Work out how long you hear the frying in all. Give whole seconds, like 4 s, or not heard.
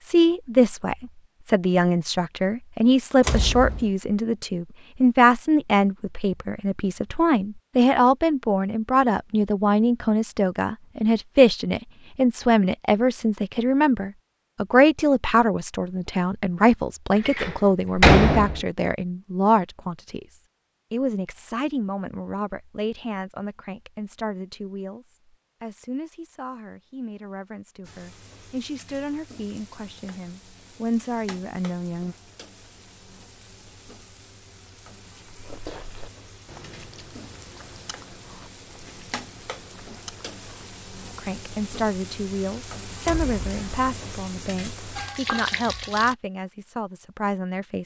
18 s.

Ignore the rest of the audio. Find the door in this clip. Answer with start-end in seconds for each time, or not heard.
3.2-3.9, 17.2-18.6, 43.0-43.9.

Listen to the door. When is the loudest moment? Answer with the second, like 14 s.
18 s.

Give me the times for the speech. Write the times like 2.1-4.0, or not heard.
0.0-32.1, 41.1-47.8.